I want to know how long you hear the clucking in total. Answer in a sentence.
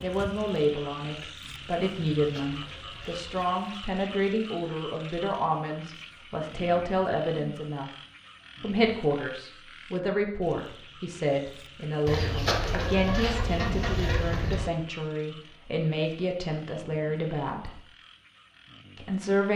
You can hear the clucking for 4 seconds altogether.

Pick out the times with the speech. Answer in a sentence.
The speech can be heard from 0.0 to 7.9 s, from 8.6 to 17.9 s and from 18.9 to 19.5 s.